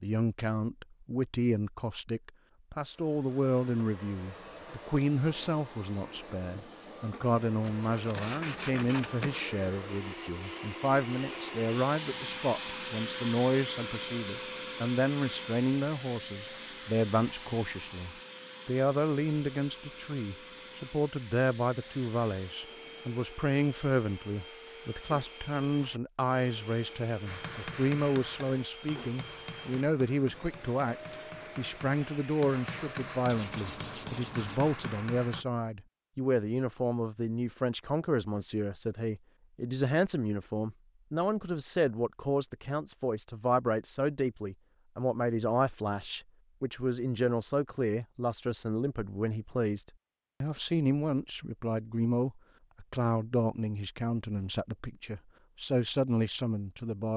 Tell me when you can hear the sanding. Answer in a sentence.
You can hear the sanding from 7.6 to 9.4 s and from 33.2 to 34.8 s.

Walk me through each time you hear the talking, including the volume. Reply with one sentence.
The talking can be heard from 0.0 to 57.1 s, at a steady volume.